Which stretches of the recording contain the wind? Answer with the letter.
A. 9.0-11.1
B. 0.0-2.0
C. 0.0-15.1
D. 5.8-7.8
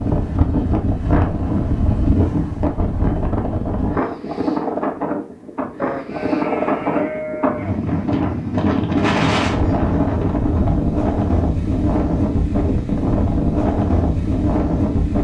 C.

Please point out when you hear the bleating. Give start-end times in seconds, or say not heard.
5.8-7.8.